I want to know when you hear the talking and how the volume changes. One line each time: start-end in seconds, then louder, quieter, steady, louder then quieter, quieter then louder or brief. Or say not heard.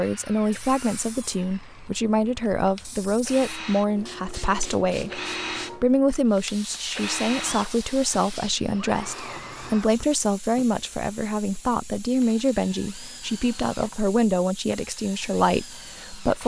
0.0-16.4 steady.